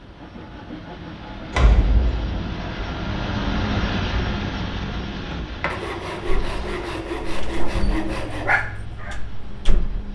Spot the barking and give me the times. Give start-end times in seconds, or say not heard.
6.2-10.0.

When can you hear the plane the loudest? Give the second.
4 s.